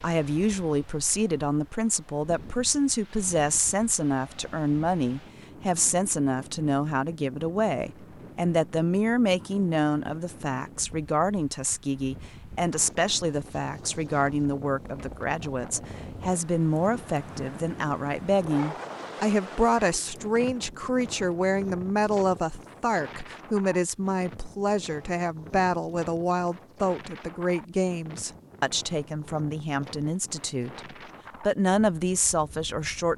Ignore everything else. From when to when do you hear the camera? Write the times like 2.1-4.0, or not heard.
not heard.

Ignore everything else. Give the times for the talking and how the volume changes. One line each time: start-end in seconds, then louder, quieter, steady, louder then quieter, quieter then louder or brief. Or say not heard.
0.0-33.1 steady.